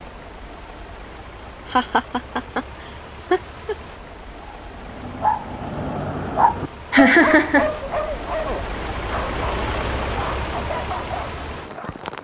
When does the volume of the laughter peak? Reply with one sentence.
The loudest moment of the laughter is at 7 seconds.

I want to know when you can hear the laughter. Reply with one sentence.
The laughter can be heard from 1.7 to 2.6 s, from 3.3 to 3.8 s and from 6.9 to 7.7 s.